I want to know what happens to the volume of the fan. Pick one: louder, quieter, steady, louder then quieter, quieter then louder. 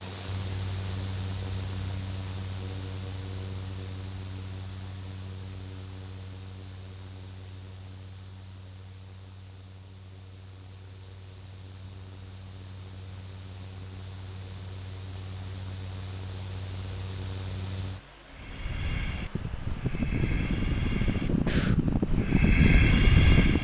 quieter then louder.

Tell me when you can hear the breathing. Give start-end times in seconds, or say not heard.
18.3-23.5.